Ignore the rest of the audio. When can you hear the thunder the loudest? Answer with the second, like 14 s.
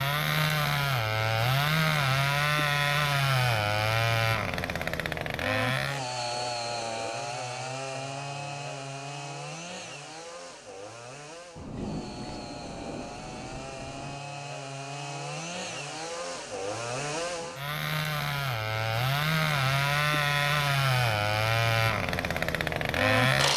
12 s.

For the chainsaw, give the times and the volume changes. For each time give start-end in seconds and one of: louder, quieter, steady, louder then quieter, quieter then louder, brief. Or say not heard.
0.0-23.5 quieter then louder.